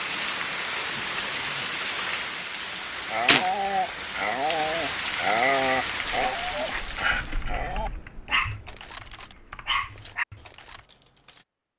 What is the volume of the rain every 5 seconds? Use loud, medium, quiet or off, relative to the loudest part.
loud, loud, off.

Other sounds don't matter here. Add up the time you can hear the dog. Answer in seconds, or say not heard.
8 s.